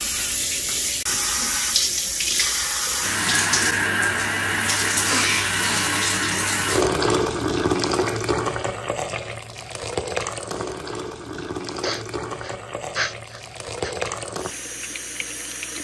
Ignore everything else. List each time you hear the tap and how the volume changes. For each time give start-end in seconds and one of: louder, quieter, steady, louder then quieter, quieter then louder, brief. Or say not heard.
0.0-15.7 quieter.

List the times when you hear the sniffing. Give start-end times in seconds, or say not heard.
5.0-5.9, 11.3-13.9.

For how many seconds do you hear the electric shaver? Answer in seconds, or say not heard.
not heard.